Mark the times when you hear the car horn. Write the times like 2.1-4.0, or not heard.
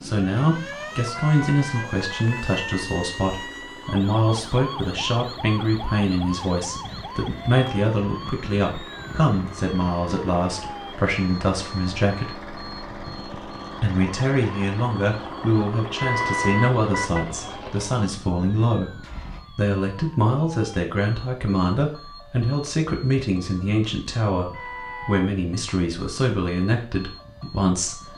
1.1-2.9, 15.9-17.2, 24.5-25.2.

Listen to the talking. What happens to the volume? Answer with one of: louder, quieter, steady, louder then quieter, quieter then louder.
steady.